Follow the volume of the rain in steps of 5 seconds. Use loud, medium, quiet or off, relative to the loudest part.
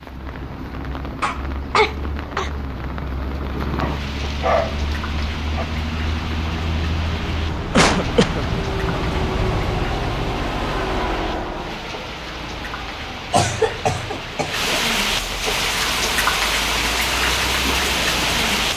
quiet, quiet, medium, loud.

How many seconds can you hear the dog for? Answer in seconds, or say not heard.
2 s.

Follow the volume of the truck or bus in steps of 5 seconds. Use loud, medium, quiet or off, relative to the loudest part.
medium, loud, loud, medium.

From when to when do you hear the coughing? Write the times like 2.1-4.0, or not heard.
1.2-2.5, 7.8-8.4, 13.3-14.8.